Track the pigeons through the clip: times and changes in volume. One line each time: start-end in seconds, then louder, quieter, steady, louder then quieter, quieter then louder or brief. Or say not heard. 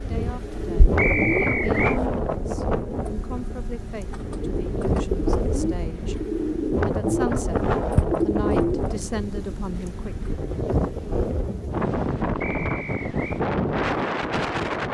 0.0-10.4 quieter then louder.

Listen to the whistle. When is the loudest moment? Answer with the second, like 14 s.
1 s.